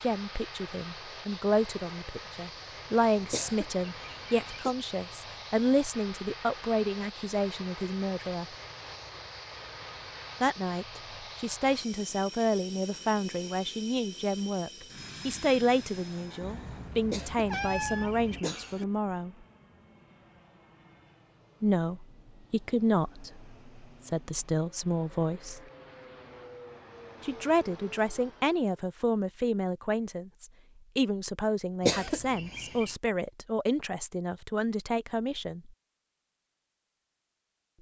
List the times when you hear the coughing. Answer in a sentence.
You can hear the coughing from 3.3 to 4.8 s, from 17.1 to 18.9 s and from 31.8 to 32.9 s.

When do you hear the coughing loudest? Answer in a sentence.
The volume of the coughing peaks at 32 seconds.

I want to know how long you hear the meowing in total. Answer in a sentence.
You can hear the meowing for 2 seconds altogether.